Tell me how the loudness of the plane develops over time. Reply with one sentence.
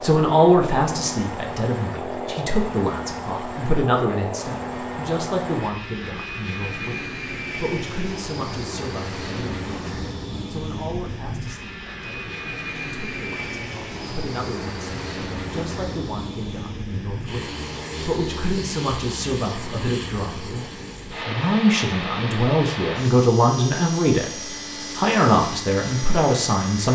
The loudness of the plane stays about the same.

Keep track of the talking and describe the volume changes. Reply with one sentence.
The volume of the talking goes down, then up.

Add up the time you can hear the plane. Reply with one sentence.
The plane can be heard for 27 seconds in total.